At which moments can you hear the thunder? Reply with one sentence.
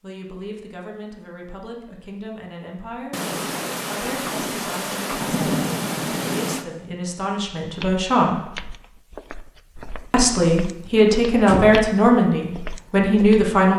The thunder can be heard from 3.1 to 6.7 s.